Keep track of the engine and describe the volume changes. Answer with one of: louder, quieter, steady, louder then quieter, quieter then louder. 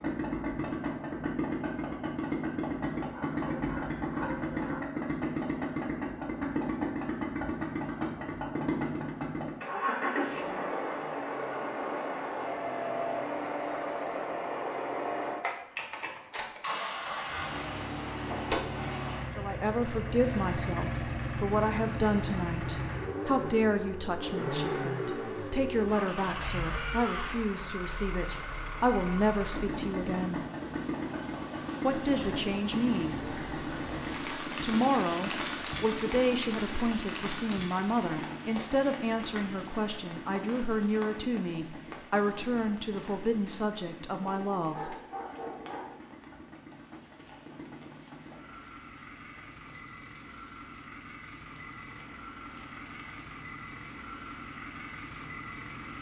quieter.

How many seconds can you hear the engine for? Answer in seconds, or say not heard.
56 s.